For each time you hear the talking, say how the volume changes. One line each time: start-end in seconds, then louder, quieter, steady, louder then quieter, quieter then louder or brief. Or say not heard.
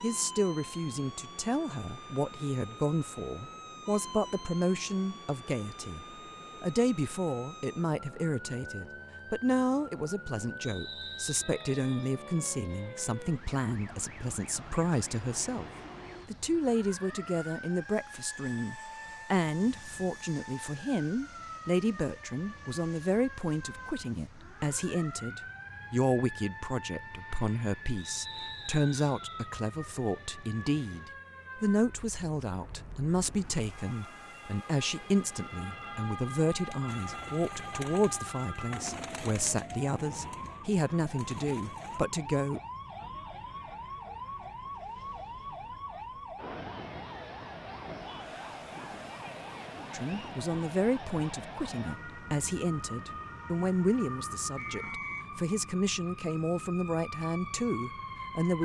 0.0-42.6 steady
49.9-58.6 steady.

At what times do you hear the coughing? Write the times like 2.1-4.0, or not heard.
not heard.